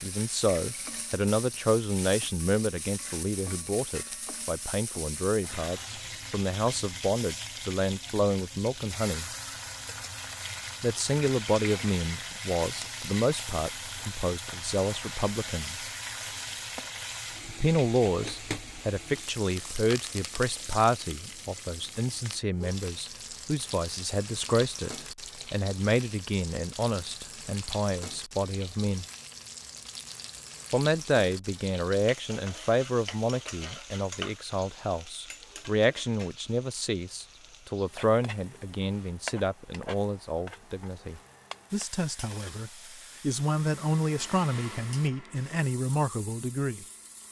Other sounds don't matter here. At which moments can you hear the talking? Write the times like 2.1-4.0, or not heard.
0.0-9.3, 10.8-15.9, 17.4-29.1, 30.7-46.9.